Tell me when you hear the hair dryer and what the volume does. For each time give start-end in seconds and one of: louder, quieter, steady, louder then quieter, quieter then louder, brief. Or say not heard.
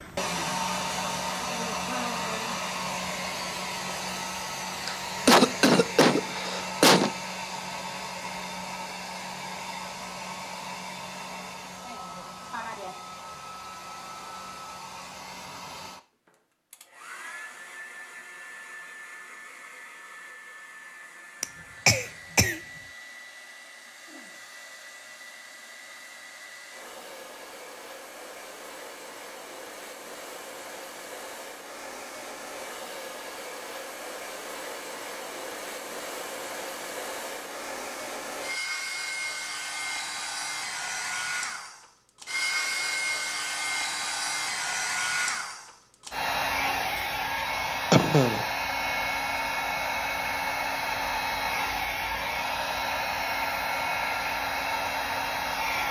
0.0-55.8 quieter then louder.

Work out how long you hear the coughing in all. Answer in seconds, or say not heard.
4 s.